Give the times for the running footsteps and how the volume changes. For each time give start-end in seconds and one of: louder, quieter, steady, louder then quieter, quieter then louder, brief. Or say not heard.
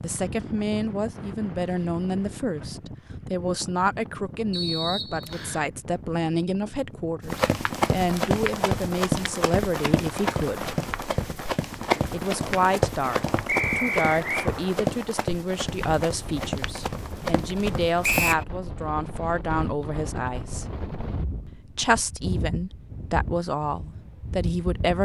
7.2-18.4 quieter.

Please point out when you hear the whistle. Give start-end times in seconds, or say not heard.
4.5-5.7, 13.4-14.5, 18.0-18.4.